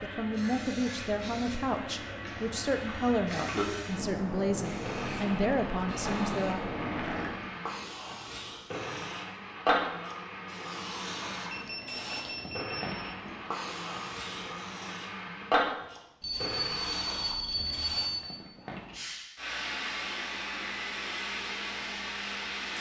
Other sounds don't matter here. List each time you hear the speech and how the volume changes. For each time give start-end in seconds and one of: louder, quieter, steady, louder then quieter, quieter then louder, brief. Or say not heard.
0.0-6.6 steady.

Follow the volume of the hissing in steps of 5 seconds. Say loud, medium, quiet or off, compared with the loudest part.
medium, loud, medium, loud, loud.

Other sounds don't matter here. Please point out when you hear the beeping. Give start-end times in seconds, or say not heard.
2.2-3.6, 11.5-13.0, 16.2-18.1.